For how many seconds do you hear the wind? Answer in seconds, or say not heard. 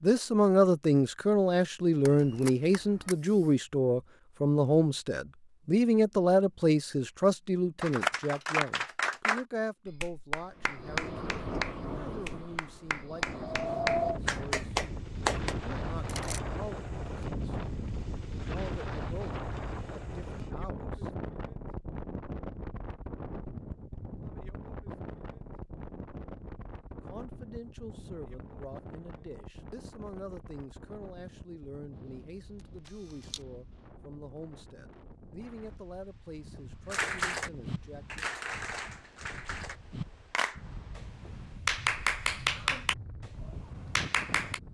34 s.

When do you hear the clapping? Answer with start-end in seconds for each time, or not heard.
7.8-15.6, 36.9-44.6.